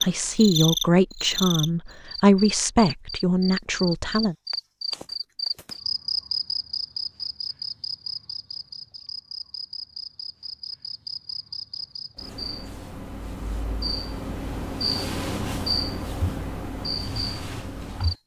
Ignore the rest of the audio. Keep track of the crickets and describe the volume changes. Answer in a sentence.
The volume of the crickets goes down, then up.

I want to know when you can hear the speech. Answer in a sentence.
The speech can be heard from 0.0 to 4.3 s.